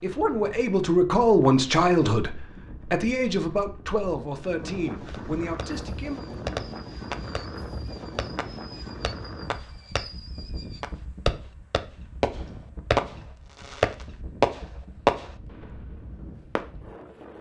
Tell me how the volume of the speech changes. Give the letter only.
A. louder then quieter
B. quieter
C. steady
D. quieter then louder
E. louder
B.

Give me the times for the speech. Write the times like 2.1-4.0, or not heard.
0.0-6.2.